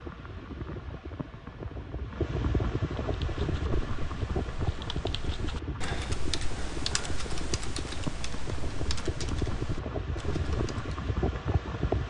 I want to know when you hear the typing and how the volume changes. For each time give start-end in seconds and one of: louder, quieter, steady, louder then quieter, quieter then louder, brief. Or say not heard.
3.0-11.0 louder then quieter.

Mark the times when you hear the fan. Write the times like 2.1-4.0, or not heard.
0.0-12.0.